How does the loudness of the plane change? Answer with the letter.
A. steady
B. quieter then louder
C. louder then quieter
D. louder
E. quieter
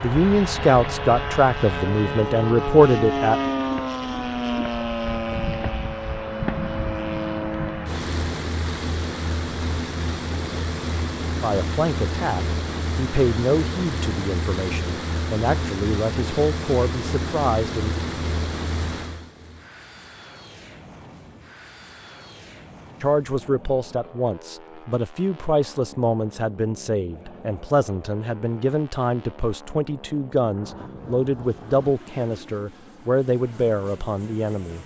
E.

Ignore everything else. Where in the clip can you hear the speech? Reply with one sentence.
The speech can be heard from 0.0 to 3.4 s, from 11.4 to 18.0 s and from 23.0 to 34.8 s.